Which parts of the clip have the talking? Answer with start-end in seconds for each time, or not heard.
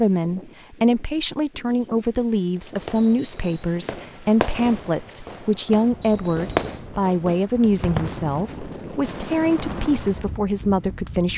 0.0-11.3.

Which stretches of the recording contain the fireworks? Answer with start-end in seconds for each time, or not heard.
2.6-10.3.